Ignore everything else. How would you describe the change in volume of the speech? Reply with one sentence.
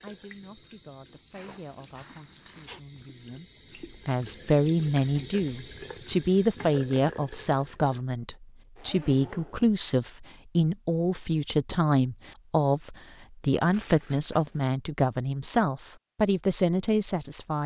The volume of the speech goes up.